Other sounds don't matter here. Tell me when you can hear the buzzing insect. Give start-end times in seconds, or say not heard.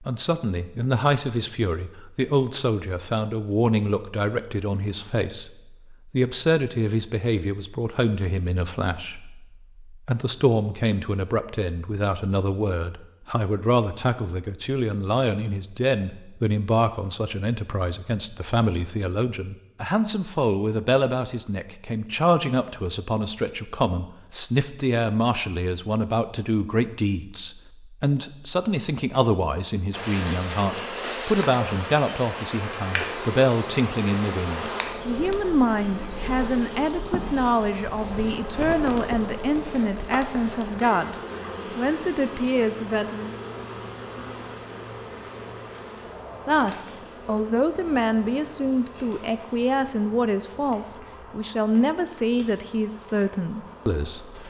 29.9-54.4.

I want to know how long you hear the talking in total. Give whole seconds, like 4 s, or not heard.
51 s.